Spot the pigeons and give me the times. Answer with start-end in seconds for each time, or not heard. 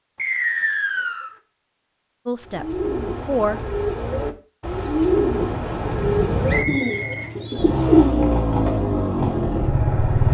2.4-8.3.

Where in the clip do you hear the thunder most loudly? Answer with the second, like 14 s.
6 s.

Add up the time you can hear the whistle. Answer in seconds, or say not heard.
3 s.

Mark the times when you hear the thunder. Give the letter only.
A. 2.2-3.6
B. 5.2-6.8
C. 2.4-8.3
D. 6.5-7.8
B.